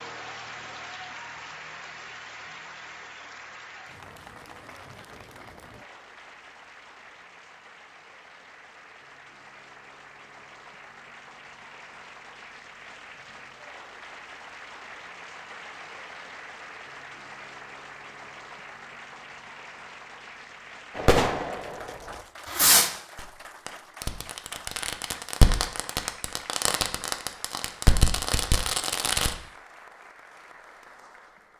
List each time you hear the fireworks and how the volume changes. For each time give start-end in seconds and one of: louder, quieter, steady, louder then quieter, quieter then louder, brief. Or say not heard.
20.9-29.4 quieter then louder.